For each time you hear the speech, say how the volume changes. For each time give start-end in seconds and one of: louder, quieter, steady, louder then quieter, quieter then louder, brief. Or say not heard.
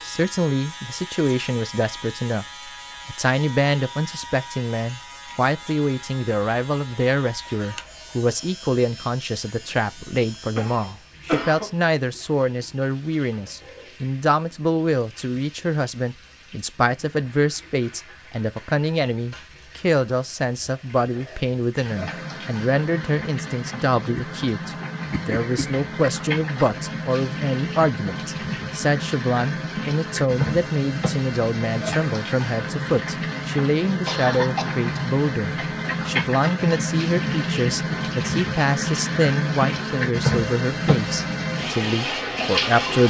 0.0-2.5 brief
3.0-43.0 steady.